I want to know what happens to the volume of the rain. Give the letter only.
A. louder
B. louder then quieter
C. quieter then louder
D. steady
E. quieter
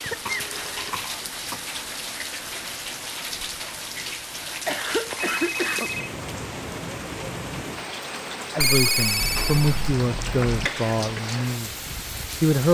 D.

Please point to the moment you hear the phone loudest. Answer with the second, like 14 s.
9 s.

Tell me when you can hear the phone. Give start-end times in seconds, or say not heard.
0.2-1.0, 5.0-6.2, 8.6-9.9.